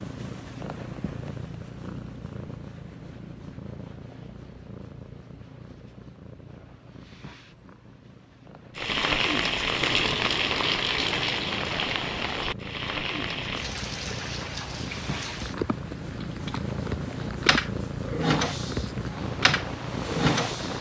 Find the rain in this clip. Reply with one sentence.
You can hear the rain from 8.8 to 20.7 s.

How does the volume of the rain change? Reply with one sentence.
The volume of the rain goes down.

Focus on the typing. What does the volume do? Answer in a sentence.
The loudness of the typing goes up.